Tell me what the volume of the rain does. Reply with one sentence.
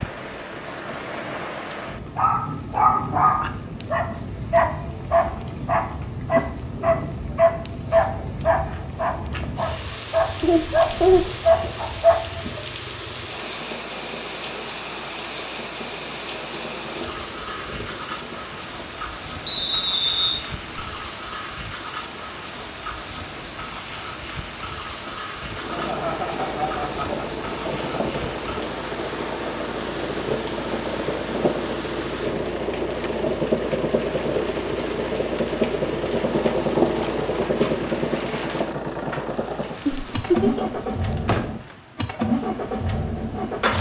The volume of the rain stays about the same.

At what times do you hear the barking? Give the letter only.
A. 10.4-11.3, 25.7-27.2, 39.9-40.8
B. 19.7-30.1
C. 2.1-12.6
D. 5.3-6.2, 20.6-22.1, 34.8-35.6
C.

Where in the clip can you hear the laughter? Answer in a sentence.
The laughter can be heard from 10.4 to 11.3 s, from 25.7 to 27.2 s and from 39.9 to 40.8 s.